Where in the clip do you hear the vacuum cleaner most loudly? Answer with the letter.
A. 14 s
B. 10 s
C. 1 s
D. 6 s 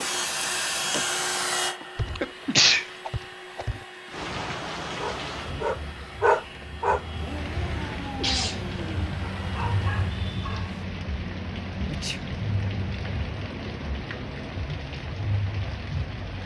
C.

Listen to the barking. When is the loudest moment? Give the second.
6 s.